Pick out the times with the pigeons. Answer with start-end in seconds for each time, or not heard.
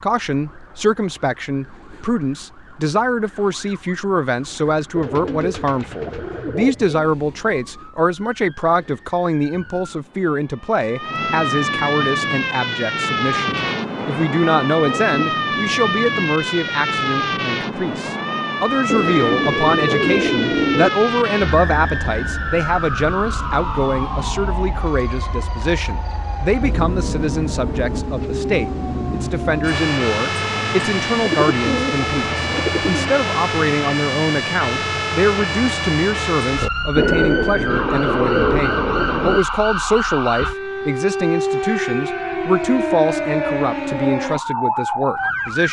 5.0-7.1, 13.4-15.2, 18.9-20.9, 31.2-33.1, 37.0-39.4.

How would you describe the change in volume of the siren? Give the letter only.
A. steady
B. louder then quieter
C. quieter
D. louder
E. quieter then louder
D.